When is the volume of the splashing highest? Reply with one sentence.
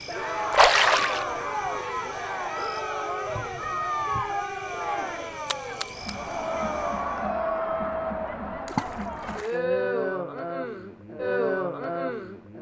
The volume of the splashing peaks at 1 second.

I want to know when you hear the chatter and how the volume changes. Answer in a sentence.
You can hear the chatter from 0.1 to 12.5 s, at a steady volume.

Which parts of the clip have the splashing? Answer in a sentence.
The splashing can be heard from 0.5 to 1.2 s, from 5.5 to 6.1 s and from 8.7 to 9.6 s.